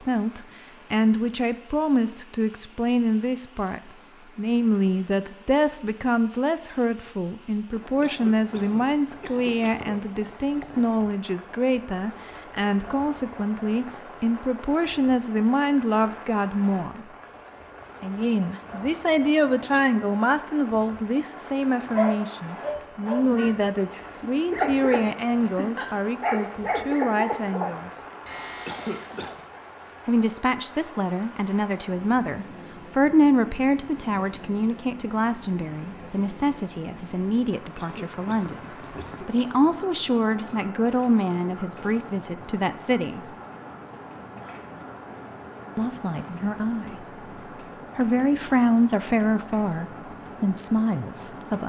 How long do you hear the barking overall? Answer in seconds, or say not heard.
7 s.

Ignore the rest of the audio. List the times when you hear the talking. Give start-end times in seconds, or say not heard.
0.0-17.1, 18.0-28.0, 30.1-43.3, 45.8-47.0, 48.0-51.6.